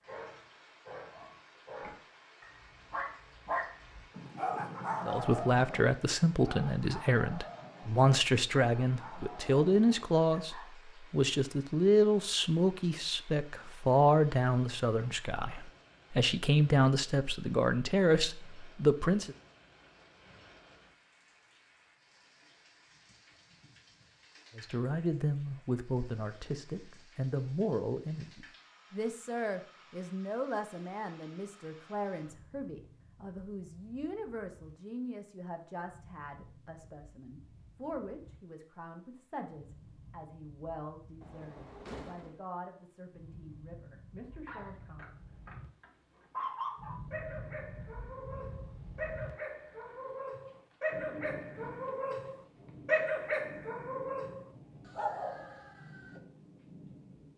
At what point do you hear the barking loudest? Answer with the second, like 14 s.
53 s.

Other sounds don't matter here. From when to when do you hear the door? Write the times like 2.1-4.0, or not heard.
41.2-42.4.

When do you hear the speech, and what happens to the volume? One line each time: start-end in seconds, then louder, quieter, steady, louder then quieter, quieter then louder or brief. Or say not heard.
5.0-19.4 steady
24.6-45.1 quieter.